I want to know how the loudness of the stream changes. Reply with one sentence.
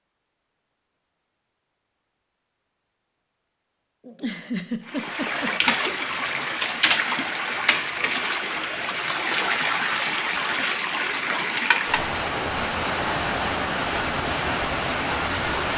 The loudness of the stream stays about the same.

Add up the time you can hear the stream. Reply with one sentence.
The stream can be heard for 11 seconds in total.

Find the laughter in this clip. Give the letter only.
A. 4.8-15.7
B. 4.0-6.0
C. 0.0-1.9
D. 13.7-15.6
B.